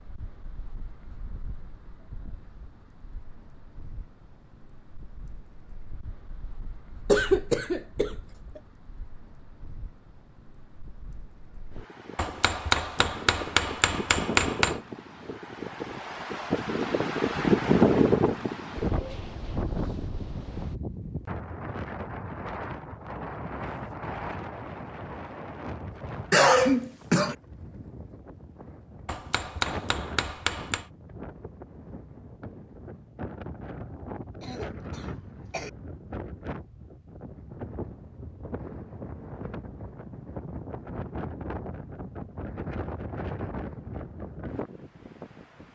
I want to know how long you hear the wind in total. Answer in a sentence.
The wind can be heard for 46 seconds in total.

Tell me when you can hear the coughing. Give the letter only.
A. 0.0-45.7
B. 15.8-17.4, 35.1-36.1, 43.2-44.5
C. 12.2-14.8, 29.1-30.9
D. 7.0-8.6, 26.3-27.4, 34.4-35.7
D.